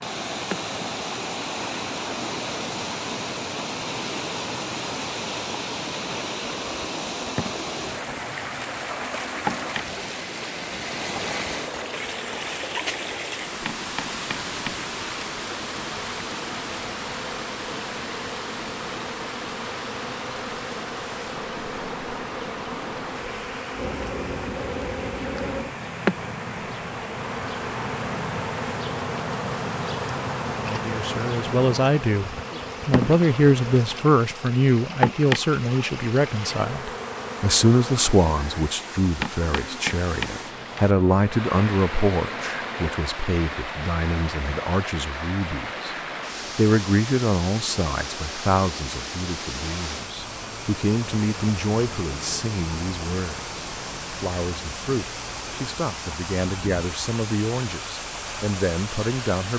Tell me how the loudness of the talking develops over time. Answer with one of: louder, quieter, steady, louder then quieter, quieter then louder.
quieter.